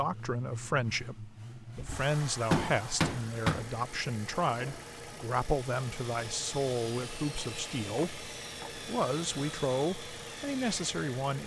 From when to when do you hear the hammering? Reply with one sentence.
You can hear the hammering from 1.8 to 3.8 s and from 7.3 to 8.8 s.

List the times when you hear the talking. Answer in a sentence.
You can hear the talking from 0.0 to 11.4 s.